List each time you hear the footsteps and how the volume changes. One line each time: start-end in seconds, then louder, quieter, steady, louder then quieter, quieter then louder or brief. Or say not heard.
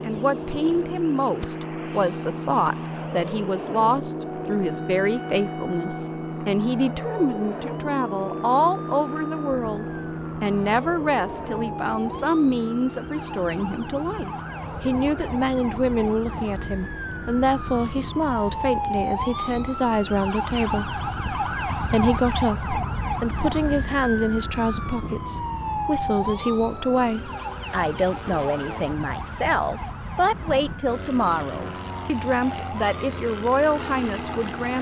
not heard.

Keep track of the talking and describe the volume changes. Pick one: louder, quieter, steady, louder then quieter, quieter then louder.
steady.